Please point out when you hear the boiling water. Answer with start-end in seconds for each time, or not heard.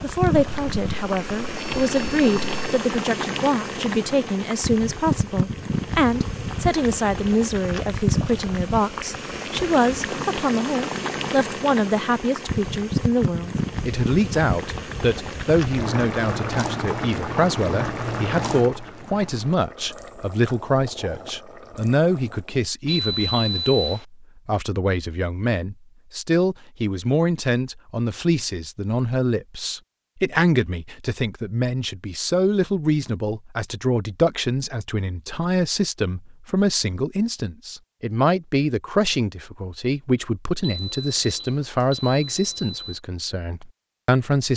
0.0-22.6.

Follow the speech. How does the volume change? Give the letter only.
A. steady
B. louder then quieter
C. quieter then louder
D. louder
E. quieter
A.